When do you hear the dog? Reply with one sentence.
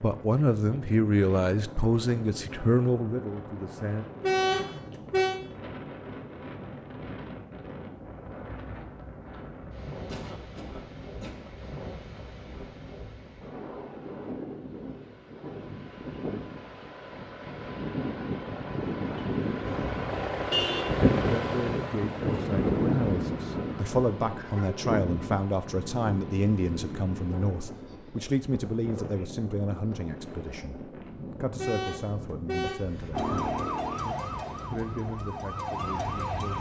You can't hear the dog here.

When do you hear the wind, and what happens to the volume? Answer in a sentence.
You can hear the wind from 0.0 to 36.5 s, getting louder then quieter.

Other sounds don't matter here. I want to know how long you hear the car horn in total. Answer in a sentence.
You can hear the car horn for 4 seconds altogether.